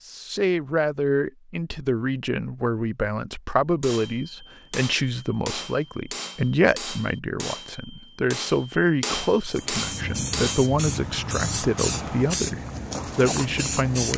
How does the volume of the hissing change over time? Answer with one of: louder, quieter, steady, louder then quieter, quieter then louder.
steady.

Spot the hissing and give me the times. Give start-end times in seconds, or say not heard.
9.5-14.1.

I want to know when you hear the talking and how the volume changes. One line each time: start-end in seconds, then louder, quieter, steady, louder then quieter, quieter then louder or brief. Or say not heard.
0.1-14.1 steady.